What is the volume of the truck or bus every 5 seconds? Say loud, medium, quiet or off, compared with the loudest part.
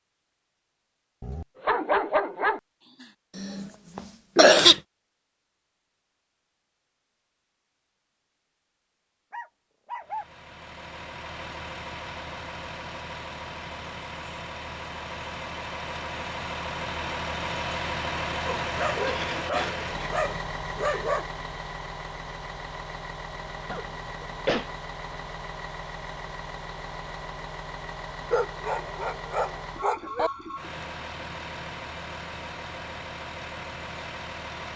off, off, medium, loud, medium, medium, medium.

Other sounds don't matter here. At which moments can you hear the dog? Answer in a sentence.
The dog can be heard from 1.2 to 3.0 s, from 9.3 to 10.2 s, from 18.4 to 21.2 s and from 28.3 to 30.3 s.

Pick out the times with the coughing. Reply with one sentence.
You can hear the coughing from 3.4 to 4.8 s, from 19.1 to 20.1 s and from 23.7 to 24.7 s.